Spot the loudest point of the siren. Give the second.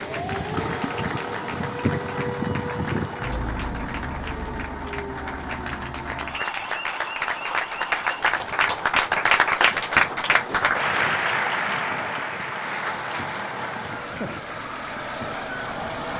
2 s.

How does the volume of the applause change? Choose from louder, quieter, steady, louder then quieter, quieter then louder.
louder then quieter.